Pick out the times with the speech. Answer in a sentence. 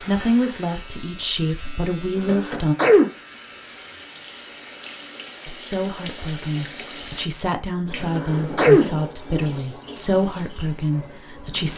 You can hear the speech from 0.0 to 2.8 s and from 5.5 to 11.7 s.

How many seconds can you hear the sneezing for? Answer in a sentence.
The sneezing can be heard for 2 seconds in total.